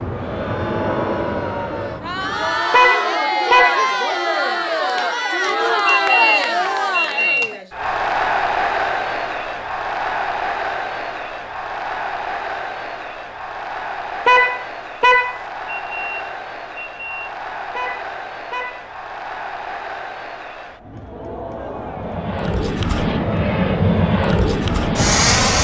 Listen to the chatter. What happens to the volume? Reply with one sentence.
The loudness of the chatter goes down.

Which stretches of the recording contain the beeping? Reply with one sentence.
You can hear the beeping from 5.8 to 7.6 s and from 15.7 to 17.4 s.